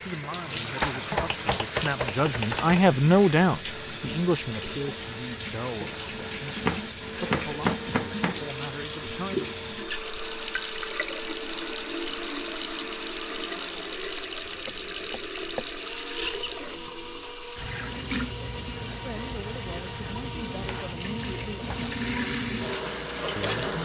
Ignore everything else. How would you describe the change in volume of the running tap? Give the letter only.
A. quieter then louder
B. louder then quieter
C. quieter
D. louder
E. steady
E.